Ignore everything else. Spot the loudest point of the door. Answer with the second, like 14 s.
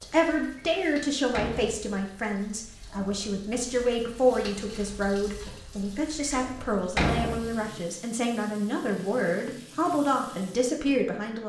7 s.